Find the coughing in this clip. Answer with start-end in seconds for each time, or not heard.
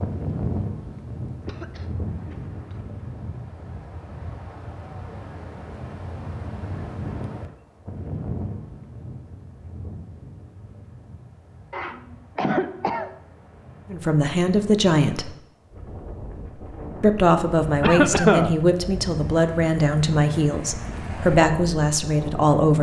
1.4-2.8, 11.7-13.2, 17.8-18.6.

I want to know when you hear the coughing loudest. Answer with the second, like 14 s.
18 s.